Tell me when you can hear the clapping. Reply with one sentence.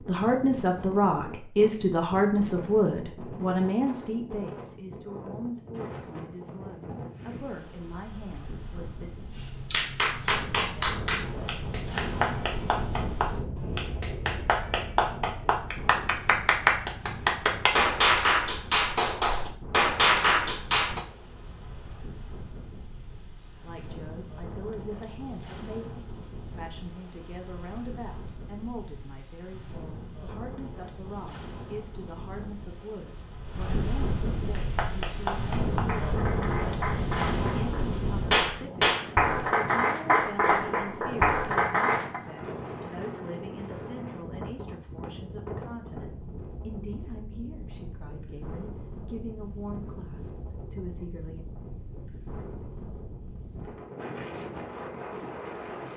The clapping can be heard from 9.3 to 21.0 s and from 34.5 to 42.2 s.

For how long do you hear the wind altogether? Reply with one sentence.
The wind can be heard for 56 seconds in total.